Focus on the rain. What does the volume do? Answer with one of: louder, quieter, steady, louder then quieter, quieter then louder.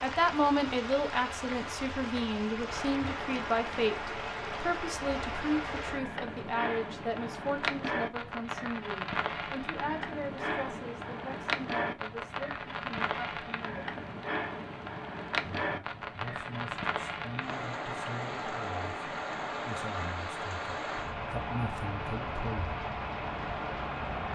steady.